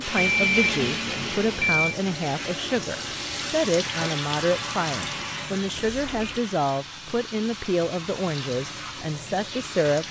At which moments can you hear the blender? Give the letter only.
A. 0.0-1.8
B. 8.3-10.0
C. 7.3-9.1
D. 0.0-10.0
A.